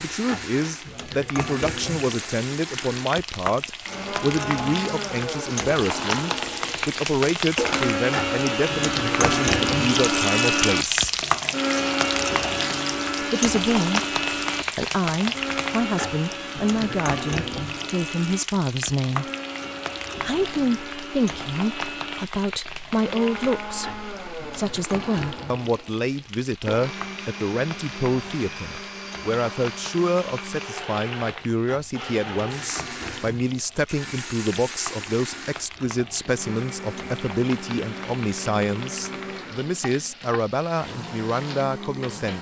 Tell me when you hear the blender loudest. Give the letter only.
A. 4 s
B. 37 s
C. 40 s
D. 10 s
D.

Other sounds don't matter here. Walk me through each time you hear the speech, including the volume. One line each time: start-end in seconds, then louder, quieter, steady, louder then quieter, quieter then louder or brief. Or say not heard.
0.0-11.2 steady
13.2-19.2 steady
20.2-42.3 steady.